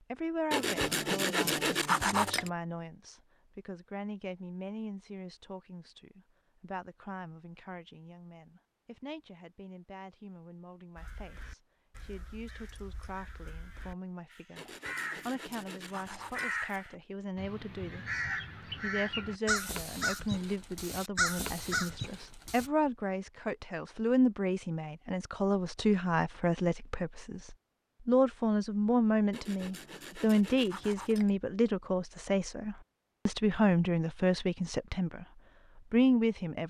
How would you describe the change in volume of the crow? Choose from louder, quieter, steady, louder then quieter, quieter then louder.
louder.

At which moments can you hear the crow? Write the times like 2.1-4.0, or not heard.
10.9-22.7.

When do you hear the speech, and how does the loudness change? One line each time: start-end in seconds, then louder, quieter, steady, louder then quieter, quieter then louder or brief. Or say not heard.
0.1-35.2 quieter then louder
35.9-36.6 brief.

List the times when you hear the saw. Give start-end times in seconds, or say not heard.
0.5-2.5, 14.6-16.6, 29.3-31.3.